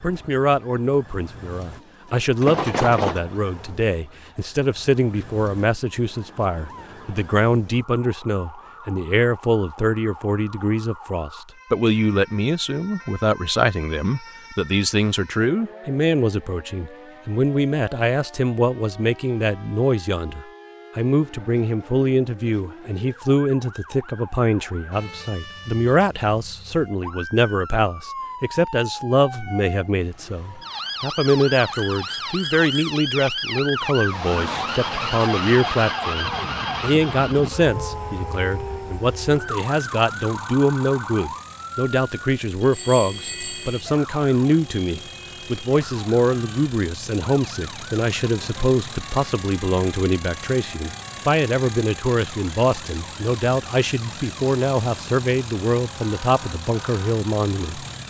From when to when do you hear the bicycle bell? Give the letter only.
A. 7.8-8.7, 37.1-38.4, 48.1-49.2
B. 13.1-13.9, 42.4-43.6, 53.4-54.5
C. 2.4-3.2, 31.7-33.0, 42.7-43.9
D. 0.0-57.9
C.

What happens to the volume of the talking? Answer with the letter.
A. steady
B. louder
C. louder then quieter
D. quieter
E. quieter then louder
A.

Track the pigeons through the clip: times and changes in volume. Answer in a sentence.
You can't hear the pigeons here.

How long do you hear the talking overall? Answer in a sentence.
The talking can be heard for 58 seconds in total.